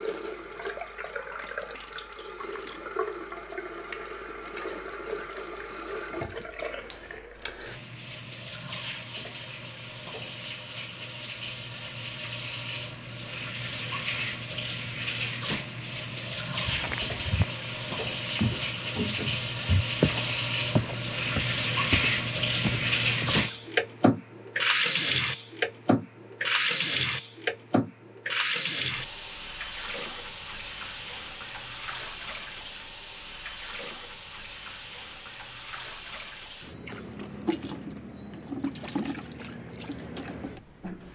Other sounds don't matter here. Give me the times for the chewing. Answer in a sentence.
The chewing can't be heard in this clip.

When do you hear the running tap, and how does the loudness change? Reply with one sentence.
You can hear the running tap from 0.0 to 41.1 s, getting louder then quieter.